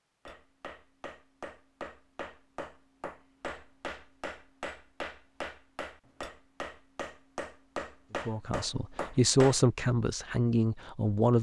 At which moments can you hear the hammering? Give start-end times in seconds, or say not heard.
0.2-9.7.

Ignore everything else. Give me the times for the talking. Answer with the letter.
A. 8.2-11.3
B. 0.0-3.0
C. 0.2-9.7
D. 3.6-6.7
A.